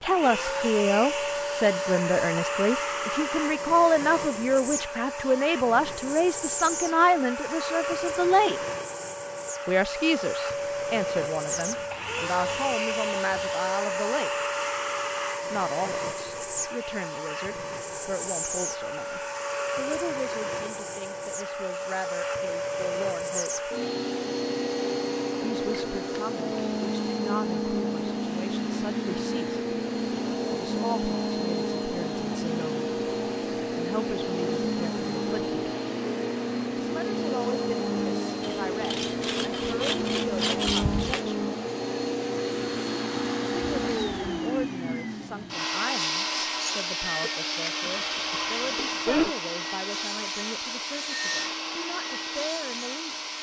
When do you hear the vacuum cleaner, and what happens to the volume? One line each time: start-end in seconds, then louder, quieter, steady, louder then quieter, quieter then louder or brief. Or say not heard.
0.0-53.3 steady.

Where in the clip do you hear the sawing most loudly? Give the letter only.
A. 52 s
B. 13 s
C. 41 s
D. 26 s
C.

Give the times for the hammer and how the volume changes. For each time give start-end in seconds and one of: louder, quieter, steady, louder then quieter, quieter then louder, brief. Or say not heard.
not heard.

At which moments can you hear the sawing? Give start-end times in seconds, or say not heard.
11.4-13.5, 38.4-41.2.